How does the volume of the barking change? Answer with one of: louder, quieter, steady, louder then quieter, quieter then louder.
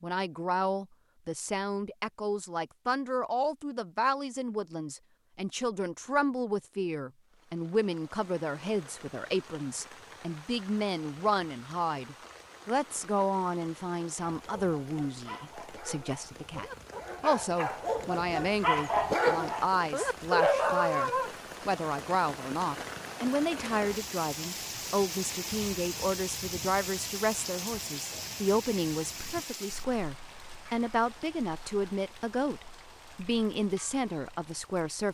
louder.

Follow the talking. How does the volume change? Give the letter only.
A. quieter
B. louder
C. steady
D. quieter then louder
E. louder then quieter
C.